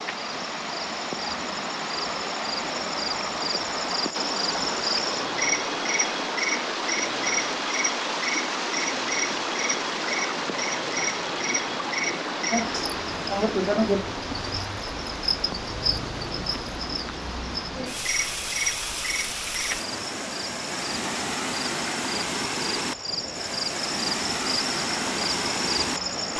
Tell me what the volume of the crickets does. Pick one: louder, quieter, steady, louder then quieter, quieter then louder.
steady.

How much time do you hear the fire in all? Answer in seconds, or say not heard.
not heard.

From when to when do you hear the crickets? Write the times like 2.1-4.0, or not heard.
0.0-26.3.